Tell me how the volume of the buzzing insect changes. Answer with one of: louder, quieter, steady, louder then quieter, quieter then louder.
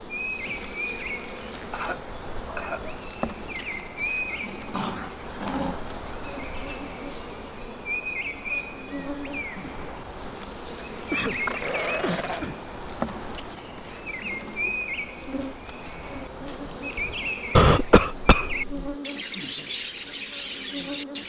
steady.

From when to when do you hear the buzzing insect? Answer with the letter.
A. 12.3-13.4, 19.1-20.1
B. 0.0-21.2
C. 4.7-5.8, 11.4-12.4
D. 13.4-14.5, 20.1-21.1
B.